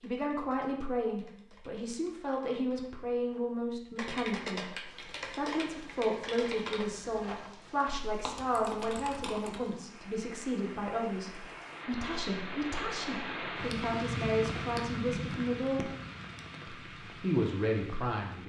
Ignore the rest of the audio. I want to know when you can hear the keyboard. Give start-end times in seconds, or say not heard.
0.0-9.8.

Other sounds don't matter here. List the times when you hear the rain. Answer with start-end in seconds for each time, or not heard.
4.8-18.4.